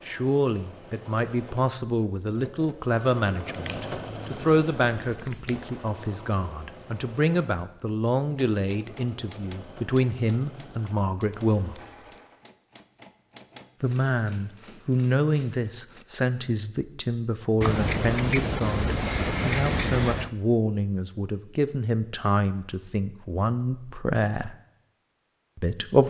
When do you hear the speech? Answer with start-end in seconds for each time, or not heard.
0.1-11.8, 13.8-24.6, 25.6-26.0.